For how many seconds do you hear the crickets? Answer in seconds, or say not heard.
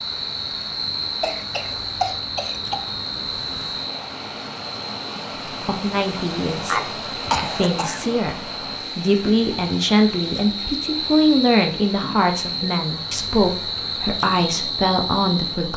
16 s.